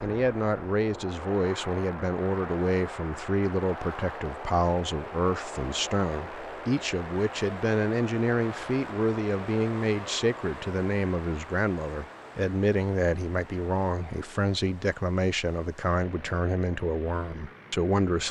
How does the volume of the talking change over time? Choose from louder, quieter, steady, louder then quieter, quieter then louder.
steady.